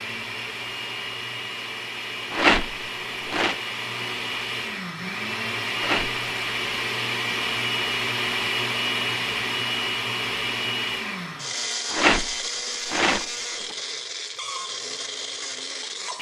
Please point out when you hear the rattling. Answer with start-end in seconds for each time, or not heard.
2.3-3.5, 5.8-6.2, 11.9-13.8.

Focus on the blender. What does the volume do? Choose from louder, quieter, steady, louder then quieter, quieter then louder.
louder then quieter.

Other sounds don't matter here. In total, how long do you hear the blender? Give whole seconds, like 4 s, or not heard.
16 s.